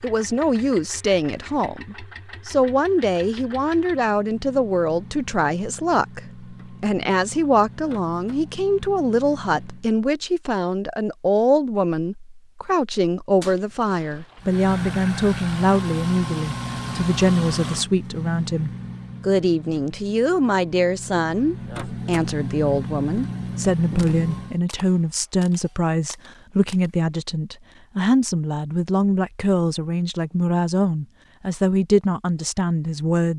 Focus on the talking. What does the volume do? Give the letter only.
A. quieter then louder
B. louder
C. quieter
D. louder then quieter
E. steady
E.